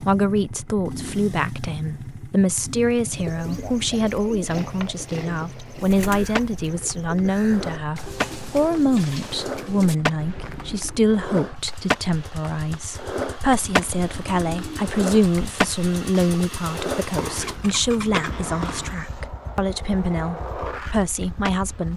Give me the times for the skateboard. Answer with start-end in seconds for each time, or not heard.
4.6-21.9.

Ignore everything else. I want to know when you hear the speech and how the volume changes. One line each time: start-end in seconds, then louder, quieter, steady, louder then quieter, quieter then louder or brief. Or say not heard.
0.0-21.9 steady.